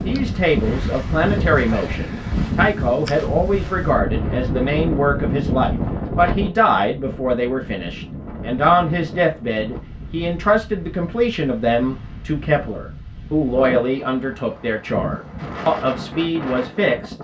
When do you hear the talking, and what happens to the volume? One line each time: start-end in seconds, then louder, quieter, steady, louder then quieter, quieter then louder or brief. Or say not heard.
0.0-17.1 steady.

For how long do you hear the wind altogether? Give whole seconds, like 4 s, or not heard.
17 s.